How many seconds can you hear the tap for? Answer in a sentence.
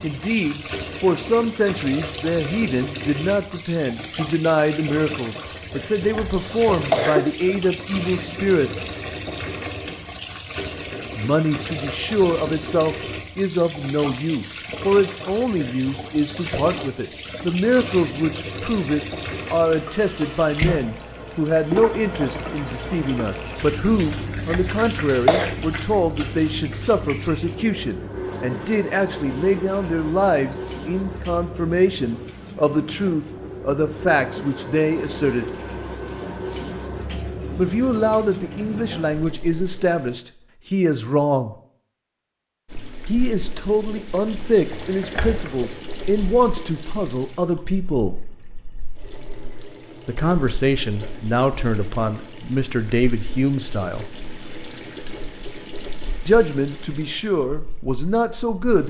You can hear the tap for 56 seconds altogether.